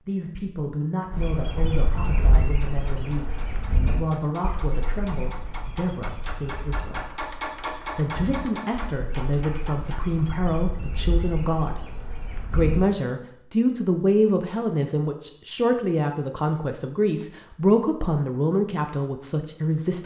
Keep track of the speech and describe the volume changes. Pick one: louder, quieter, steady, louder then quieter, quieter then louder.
louder.